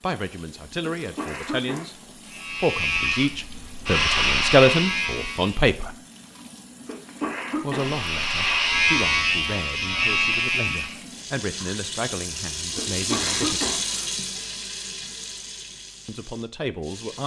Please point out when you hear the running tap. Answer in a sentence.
The running tap can be heard from 0.0 to 17.2 s.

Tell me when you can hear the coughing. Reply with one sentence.
You can hear the coughing from 0.8 to 1.9 s, from 6.8 to 8.0 s and from 12.8 to 14.1 s.